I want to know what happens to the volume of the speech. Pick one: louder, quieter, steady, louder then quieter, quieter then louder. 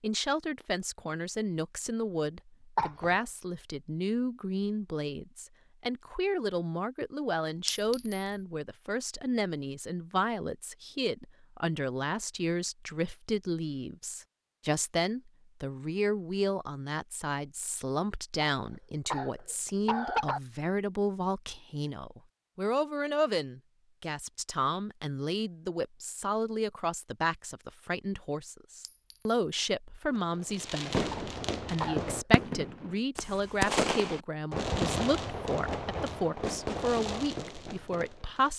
steady.